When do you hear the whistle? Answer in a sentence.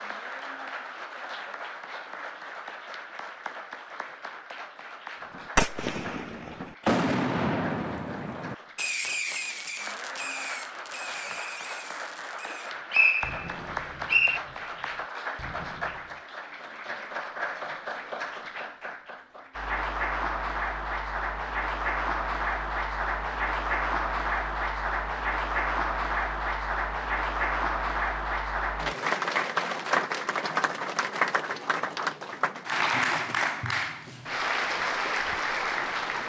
You can hear the whistle from 12.5 to 14.4 s.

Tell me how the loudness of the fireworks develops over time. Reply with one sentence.
The volume of the fireworks goes down.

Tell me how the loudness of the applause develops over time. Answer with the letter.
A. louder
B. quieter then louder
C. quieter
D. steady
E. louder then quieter
A.